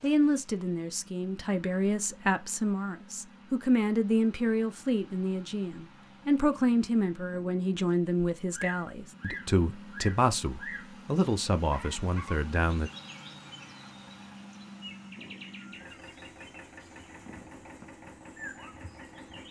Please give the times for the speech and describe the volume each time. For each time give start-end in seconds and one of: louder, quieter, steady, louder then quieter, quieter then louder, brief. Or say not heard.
0.0-12.9 steady.